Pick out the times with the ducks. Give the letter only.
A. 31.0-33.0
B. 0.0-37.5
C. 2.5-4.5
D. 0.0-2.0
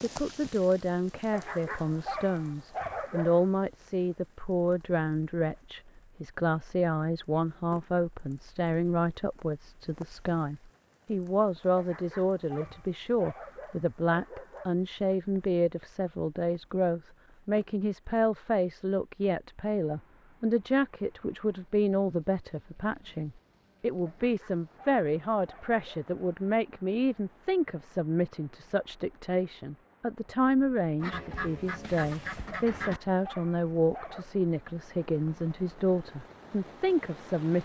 A.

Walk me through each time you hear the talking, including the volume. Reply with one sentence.
The talking can be heard from 0.0 to 37.5 s, at a steady volume.